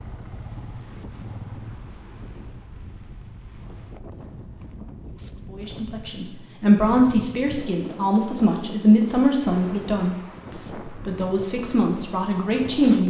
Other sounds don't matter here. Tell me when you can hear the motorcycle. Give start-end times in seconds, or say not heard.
0.0-1.8.